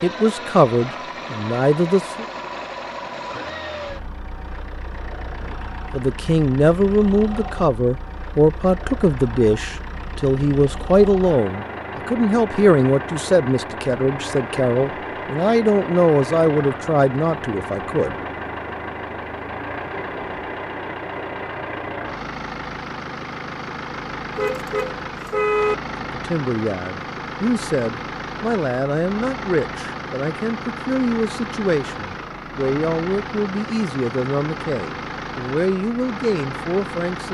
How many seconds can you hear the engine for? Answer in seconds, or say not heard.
37 s.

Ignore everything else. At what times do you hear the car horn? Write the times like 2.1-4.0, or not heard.
24.4-25.8.